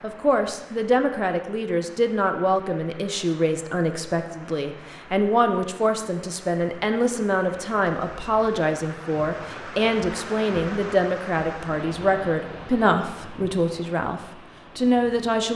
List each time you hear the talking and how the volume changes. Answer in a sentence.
The talking can be heard from 0.0 to 15.5 s, at a steady volume.